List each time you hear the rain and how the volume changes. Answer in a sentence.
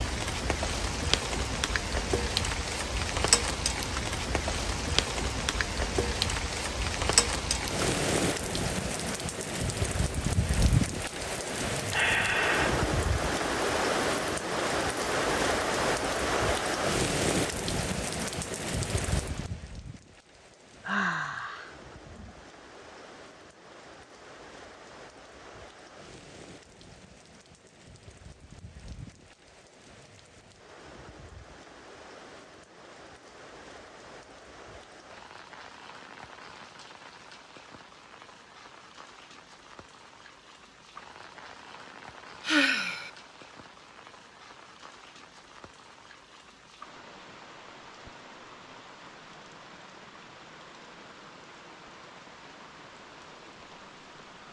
The rain can be heard from 0.0 to 54.4 s, getting quieter.